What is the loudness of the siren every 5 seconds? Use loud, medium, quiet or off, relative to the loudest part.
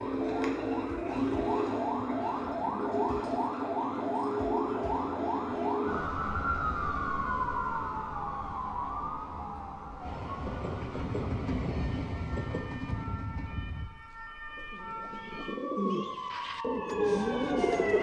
loud, loud, quiet, medium.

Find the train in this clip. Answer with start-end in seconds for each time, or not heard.
10.0-13.9.